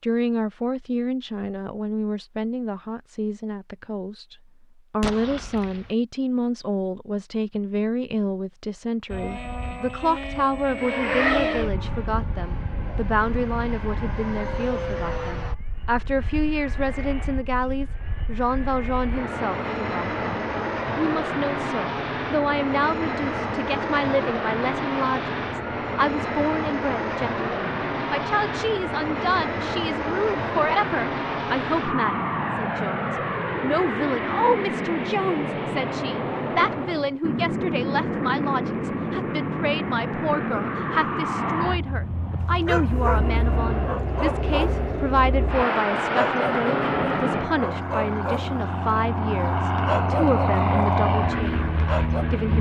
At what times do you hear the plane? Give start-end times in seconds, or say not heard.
9.1-52.5.